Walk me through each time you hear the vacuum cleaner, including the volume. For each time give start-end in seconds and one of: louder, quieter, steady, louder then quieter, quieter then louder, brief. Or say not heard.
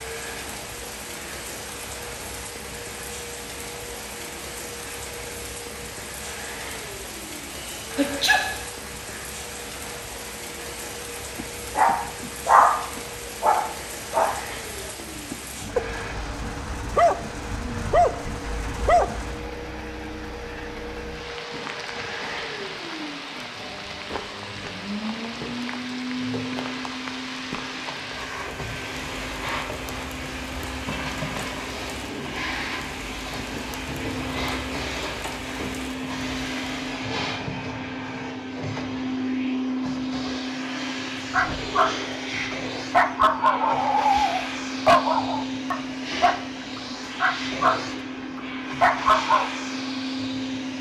0.0-50.7 louder.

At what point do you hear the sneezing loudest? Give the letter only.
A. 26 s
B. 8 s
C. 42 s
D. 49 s
B.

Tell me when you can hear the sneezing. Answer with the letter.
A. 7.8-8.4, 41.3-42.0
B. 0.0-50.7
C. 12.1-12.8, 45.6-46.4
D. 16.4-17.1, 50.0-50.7
A.